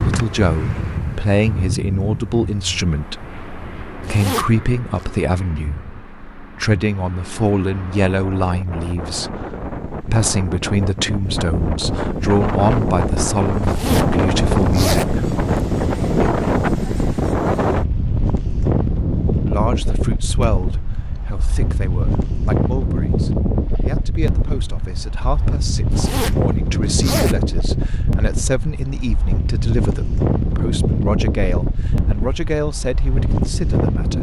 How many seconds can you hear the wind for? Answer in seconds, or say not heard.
34 s.